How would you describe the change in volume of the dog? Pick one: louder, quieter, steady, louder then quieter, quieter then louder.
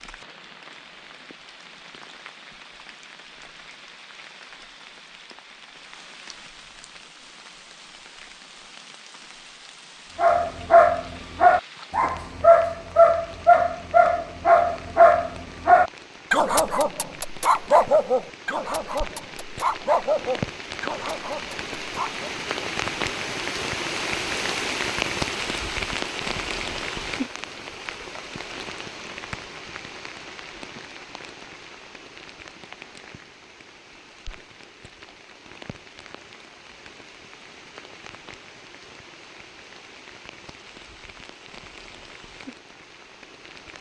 quieter.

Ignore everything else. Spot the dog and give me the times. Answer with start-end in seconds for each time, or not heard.
10.2-22.3.